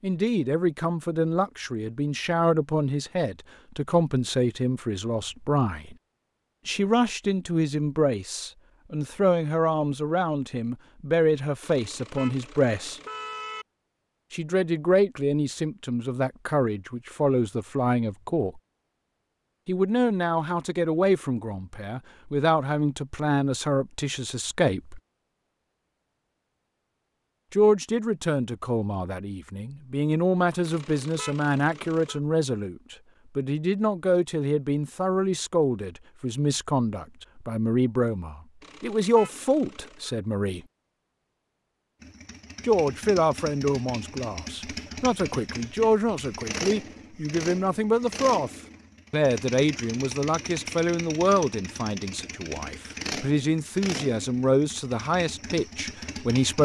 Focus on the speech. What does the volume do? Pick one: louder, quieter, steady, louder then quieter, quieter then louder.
steady.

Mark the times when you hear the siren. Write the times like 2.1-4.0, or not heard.
not heard.